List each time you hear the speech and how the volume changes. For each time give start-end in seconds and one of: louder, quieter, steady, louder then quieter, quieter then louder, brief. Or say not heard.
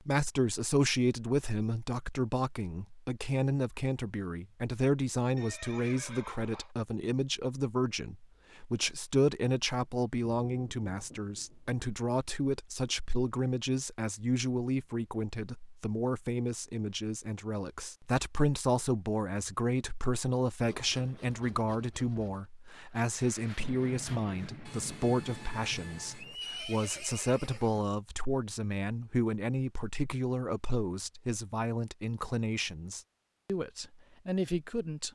0.1-35.1 steady.